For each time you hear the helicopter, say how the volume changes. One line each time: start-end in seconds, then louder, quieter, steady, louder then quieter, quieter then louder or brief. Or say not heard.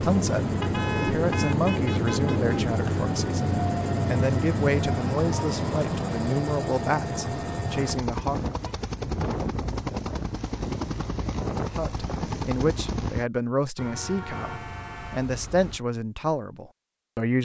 0.0-13.2 steady.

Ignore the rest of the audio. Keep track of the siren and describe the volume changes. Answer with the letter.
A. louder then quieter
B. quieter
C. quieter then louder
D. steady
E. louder
D.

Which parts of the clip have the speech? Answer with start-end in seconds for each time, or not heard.
0.0-8.4, 11.8-17.3.